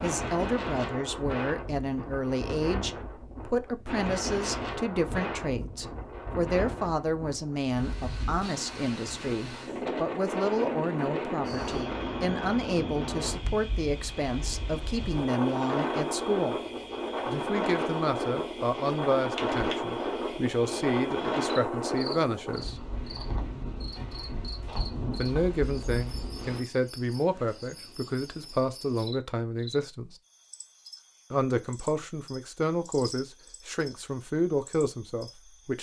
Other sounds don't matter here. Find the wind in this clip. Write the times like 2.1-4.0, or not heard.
0.0-26.6.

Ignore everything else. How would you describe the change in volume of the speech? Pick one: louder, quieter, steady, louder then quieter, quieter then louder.
steady.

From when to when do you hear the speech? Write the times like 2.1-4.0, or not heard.
0.0-16.6, 17.2-22.9, 25.1-30.1, 31.3-35.7.